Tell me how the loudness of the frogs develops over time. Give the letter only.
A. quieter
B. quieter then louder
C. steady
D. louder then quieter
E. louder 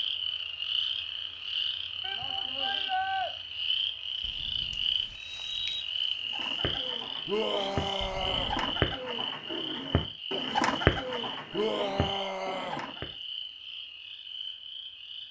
A.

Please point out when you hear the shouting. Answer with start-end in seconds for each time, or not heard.
2.0-3.3, 7.2-8.6, 11.5-12.8.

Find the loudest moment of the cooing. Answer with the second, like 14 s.
11 s.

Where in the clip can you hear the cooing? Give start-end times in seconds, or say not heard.
6.3-13.1.